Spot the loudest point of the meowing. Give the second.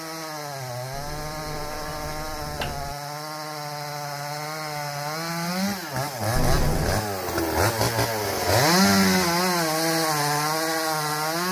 7 s.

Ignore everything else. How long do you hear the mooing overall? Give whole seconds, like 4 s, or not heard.
not heard.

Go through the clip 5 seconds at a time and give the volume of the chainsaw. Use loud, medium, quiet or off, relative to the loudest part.
medium, loud, loud.